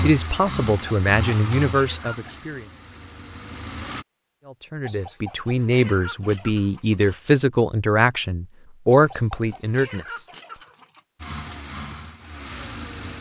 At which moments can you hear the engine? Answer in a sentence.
The engine can be heard from 0.0 to 4.0 s and from 11.2 to 13.1 s.